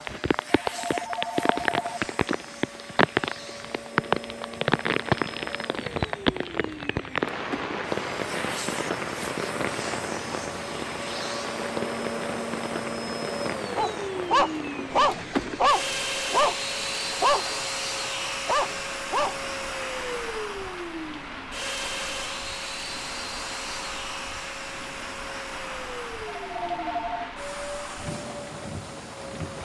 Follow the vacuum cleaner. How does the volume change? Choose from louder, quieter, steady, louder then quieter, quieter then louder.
louder then quieter.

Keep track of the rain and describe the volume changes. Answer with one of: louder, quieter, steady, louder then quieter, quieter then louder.
quieter.